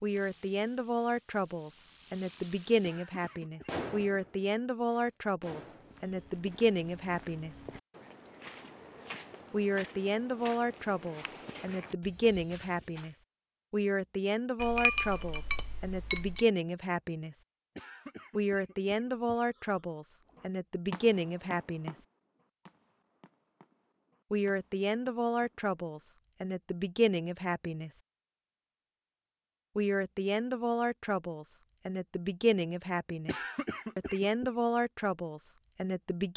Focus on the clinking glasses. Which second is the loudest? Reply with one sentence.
The volume of the clinking glasses peaks at 15 seconds.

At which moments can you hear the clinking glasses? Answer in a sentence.
You can hear the clinking glasses from 14.6 to 16.4 s.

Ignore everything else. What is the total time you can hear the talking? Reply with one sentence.
You can hear the talking for 29 seconds altogether.